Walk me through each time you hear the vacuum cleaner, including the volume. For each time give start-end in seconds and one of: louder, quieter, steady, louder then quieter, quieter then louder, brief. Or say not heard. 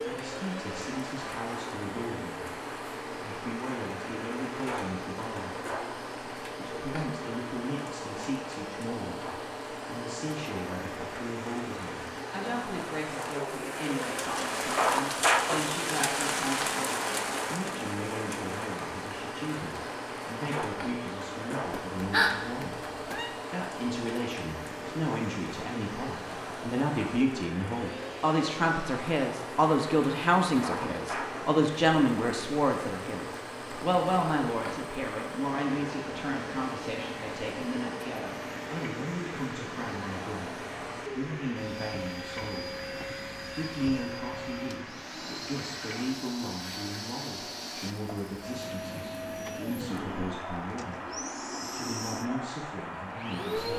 0.0-53.7 steady.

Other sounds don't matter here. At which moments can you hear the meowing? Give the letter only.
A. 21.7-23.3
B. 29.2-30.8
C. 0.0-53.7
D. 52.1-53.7
A.